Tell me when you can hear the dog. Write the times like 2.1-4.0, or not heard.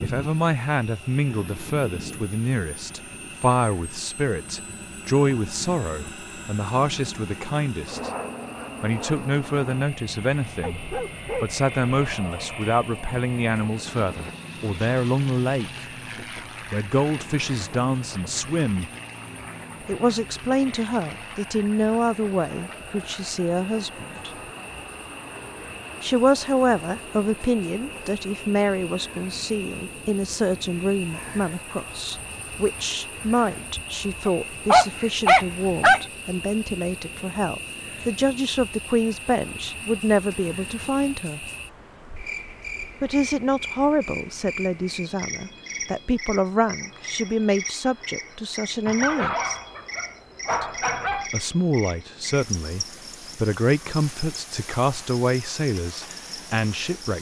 10.6-12.2, 34.2-36.0, 48.9-51.3.